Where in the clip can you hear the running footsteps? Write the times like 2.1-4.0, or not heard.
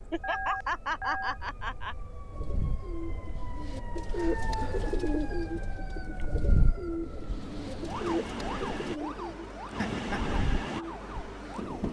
not heard.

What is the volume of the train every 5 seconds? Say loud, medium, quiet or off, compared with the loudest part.
off, loud, loud.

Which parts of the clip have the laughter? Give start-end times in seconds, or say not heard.
0.1-1.9, 9.8-10.3.